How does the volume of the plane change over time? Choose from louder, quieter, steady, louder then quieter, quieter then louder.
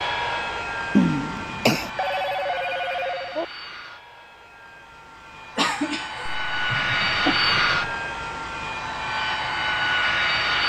quieter then louder.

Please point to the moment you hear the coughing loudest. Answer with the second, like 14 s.
1 s.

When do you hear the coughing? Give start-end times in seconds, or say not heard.
0.9-1.9, 5.5-6.3.